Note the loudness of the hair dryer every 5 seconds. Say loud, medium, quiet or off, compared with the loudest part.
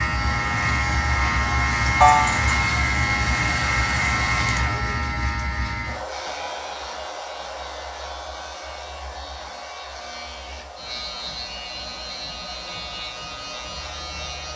loud, medium, quiet.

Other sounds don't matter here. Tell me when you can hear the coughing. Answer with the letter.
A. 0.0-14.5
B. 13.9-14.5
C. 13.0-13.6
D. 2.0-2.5
D.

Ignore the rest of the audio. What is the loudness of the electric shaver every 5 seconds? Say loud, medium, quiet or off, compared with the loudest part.
loud, medium, medium.